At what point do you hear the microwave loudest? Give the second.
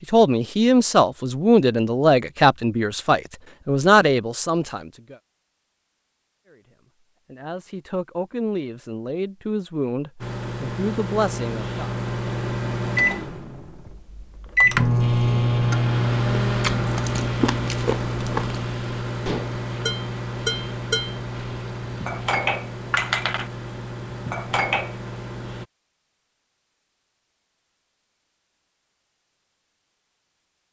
15 s.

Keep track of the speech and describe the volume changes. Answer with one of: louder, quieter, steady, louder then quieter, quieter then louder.
quieter.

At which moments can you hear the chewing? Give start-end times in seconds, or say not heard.
16.4-18.6.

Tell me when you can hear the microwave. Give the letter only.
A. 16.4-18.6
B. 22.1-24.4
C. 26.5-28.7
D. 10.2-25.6
D.